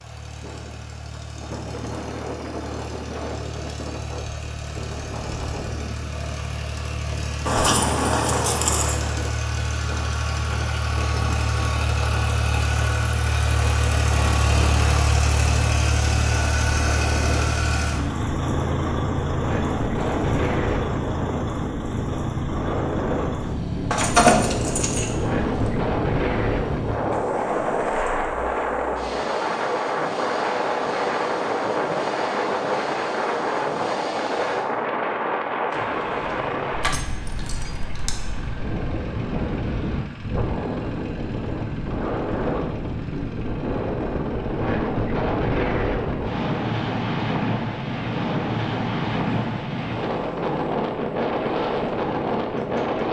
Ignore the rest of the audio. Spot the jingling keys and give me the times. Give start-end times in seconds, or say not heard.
7.5-8.9, 23.9-25.7, 36.8-38.1.